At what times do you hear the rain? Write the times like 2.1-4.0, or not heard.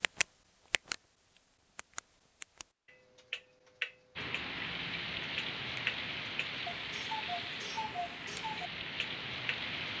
4.2-9.9.